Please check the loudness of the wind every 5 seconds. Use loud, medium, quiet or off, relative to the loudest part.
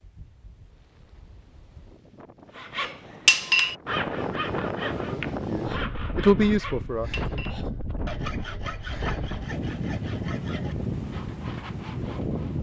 medium, loud, loud.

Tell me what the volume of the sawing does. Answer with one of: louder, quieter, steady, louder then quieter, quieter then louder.
quieter.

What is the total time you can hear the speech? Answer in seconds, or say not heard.
2 s.